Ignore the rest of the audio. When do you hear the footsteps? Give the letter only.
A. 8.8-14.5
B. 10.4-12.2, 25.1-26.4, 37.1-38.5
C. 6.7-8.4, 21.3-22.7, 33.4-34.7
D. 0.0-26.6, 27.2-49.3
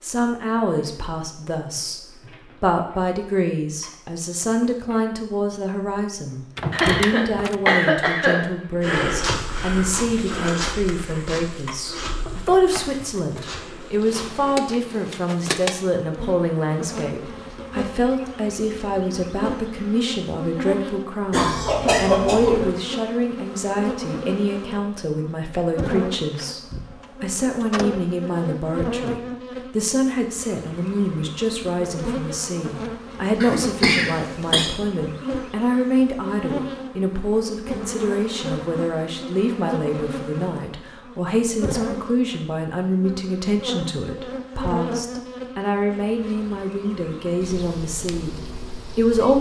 A.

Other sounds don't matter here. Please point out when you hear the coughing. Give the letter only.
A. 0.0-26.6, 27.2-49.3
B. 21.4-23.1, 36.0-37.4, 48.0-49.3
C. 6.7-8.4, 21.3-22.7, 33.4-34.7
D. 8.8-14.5
C.